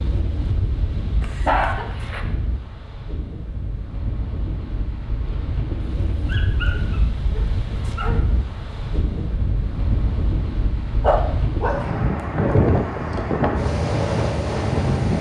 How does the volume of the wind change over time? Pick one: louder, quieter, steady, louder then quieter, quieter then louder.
louder.